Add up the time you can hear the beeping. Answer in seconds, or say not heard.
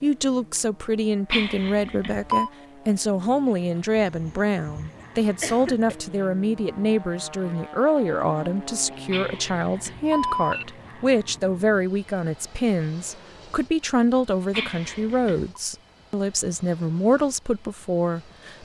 4 s.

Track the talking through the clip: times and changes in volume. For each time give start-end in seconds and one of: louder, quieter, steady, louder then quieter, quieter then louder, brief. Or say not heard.
0.0-18.6 steady.